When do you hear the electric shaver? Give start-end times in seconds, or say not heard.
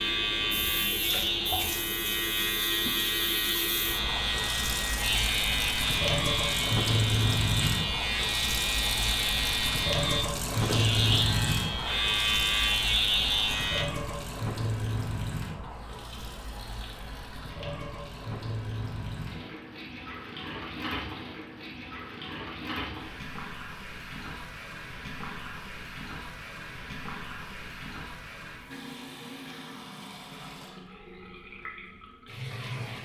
0.0-13.8.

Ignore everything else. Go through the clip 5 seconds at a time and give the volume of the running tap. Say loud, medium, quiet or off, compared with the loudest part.
medium, loud, loud, medium, medium, medium, medium.